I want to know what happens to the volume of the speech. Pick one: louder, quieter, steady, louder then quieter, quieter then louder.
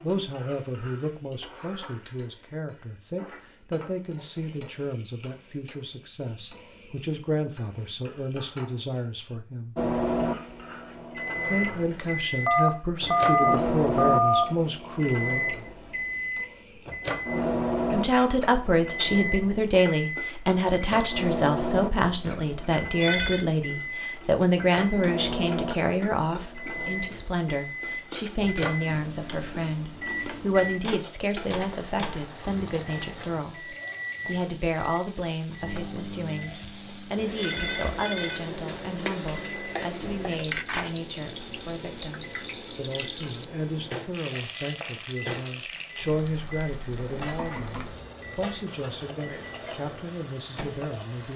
louder then quieter.